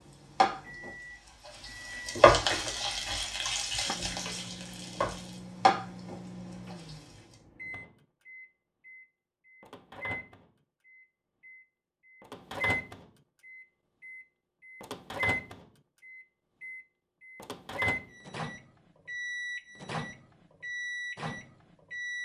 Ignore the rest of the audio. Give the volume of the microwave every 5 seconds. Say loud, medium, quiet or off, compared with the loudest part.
medium, medium, loud, loud, loud.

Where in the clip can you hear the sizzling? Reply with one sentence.
You can hear the sizzling from 0.4 to 7.0 s.